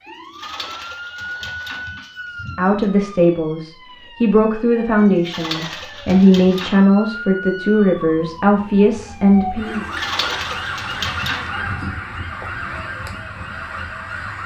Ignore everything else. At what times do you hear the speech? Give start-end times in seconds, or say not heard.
2.5-9.8.